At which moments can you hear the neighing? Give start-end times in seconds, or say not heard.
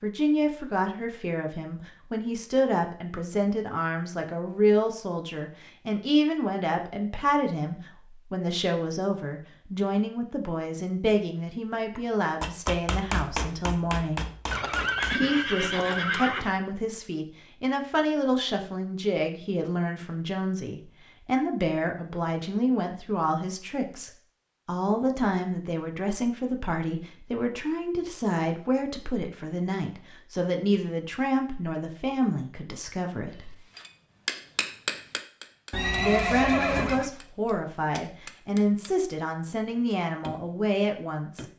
14.5-16.5, 35.7-37.1.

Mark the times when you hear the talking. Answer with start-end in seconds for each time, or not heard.
0.0-14.2, 15.2-33.5, 36.0-41.5.